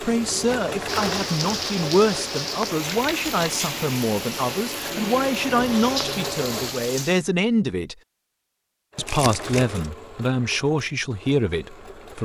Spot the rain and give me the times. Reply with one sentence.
You can hear the rain from 0.0 to 7.2 s.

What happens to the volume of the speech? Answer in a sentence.
The volume of the speech stays about the same.